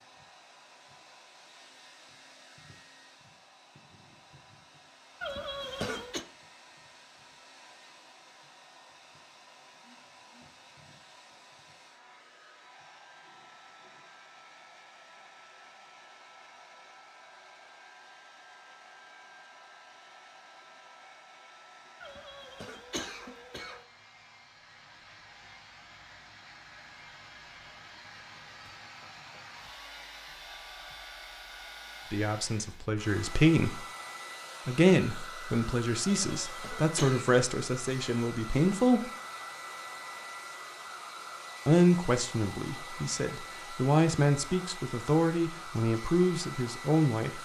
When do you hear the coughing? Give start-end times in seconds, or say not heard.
5.2-6.2, 22.0-23.9, 36.0-37.4.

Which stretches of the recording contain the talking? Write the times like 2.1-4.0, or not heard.
32.1-33.9, 34.6-39.1, 41.6-47.4.